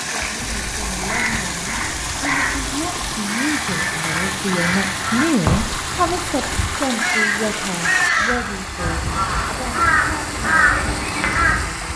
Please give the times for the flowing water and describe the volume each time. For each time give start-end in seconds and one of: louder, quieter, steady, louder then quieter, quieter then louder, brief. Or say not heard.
0.0-11.9 steady.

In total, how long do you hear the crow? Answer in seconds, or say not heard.
11 s.